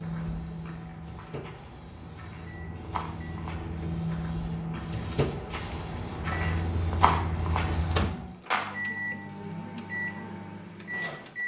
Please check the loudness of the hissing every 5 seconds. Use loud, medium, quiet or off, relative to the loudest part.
medium, loud, off.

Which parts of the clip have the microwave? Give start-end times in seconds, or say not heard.
0.0-11.4.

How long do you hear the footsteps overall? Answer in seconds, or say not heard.
9 s.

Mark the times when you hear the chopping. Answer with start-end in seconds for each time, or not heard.
not heard.